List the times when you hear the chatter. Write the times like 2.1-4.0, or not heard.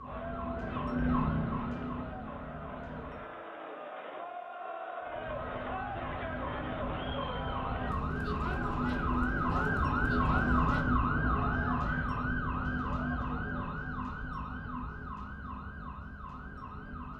0.0-10.8.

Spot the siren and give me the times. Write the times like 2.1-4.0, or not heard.
0.0-3.3, 5.0-17.1.